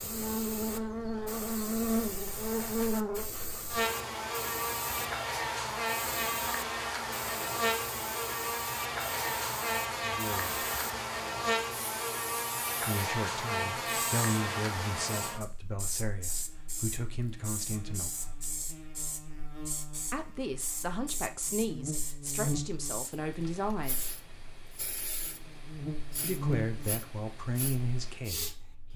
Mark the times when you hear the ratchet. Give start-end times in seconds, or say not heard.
not heard.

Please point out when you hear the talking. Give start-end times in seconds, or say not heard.
10.0-10.6, 12.8-18.4, 20.1-24.2, 26.2-28.9.